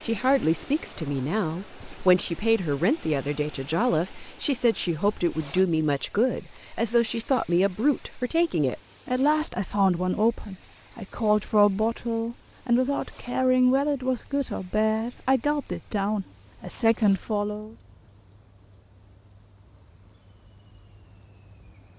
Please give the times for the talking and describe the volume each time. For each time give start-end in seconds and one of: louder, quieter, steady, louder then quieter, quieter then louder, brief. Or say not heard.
0.0-17.8 steady.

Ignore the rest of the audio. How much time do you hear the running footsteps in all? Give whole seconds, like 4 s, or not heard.
not heard.